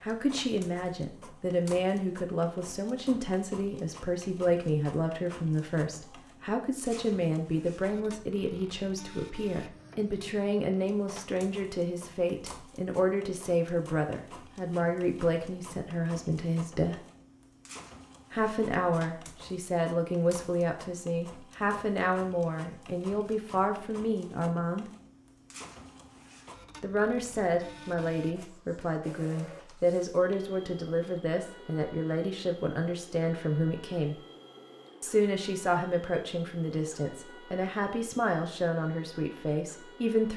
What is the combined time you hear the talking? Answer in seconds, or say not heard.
36 s.